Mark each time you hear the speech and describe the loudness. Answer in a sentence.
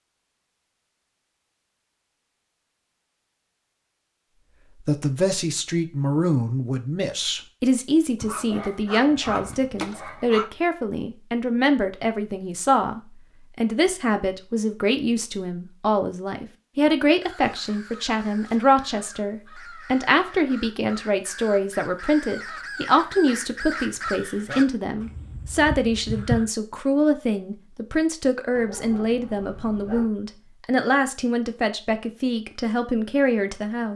The speech can be heard from 4.8 to 33.9 s, at a steady volume.